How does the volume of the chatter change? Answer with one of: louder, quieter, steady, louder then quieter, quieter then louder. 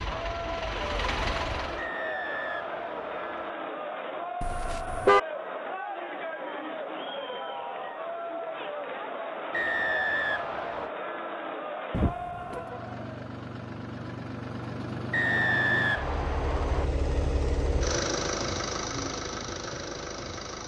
steady.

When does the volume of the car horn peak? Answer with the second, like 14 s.
5 s.